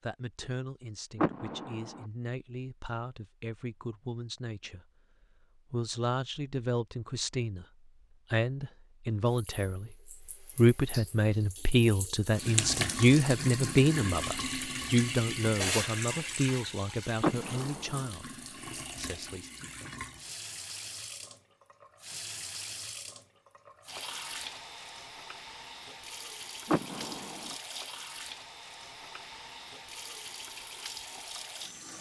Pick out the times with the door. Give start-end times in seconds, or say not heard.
1.1-2.0, 17.2-18.1, 26.6-27.6.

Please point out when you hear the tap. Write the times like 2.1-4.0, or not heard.
9.3-31.9.